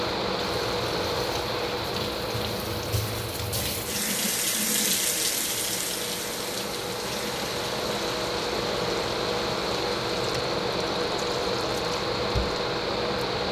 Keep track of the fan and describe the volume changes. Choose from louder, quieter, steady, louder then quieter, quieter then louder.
quieter then louder.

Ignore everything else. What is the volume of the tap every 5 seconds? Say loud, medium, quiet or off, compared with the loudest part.
loud, loud, medium.